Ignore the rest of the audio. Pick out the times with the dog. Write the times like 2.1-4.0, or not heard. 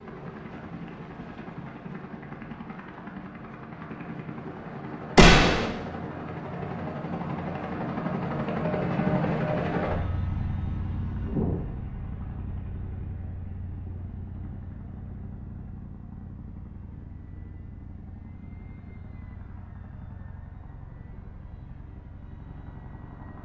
not heard.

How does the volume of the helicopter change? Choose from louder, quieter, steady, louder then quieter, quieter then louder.
louder then quieter.